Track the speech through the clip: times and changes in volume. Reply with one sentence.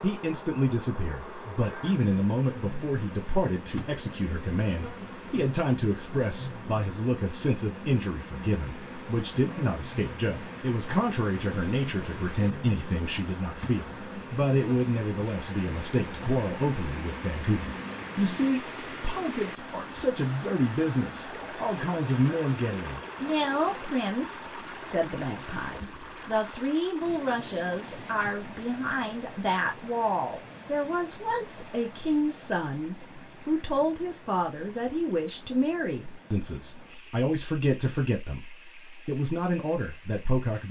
You can hear the speech from 0.0 to 40.6 s, at a steady volume.